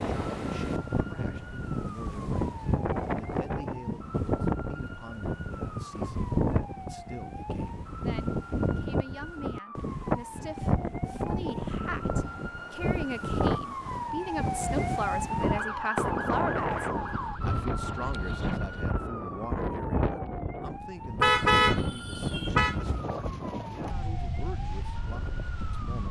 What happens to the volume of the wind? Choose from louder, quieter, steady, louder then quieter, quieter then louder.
steady.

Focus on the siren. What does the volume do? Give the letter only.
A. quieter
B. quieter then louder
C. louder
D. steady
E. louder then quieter
E.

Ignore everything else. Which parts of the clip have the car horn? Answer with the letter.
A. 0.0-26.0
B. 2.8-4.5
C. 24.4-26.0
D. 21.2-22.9
D.